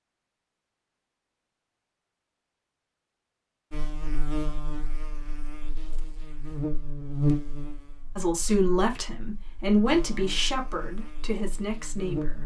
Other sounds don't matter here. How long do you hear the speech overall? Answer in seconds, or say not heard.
4 s.